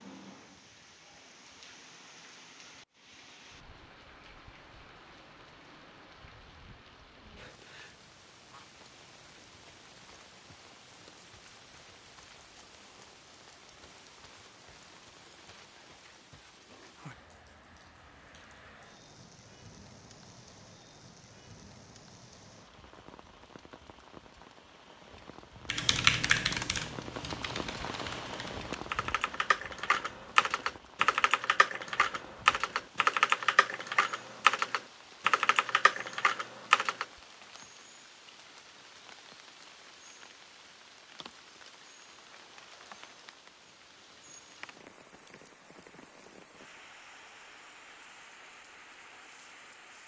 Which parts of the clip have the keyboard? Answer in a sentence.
You can hear the keyboard from 25.7 to 37.0 s.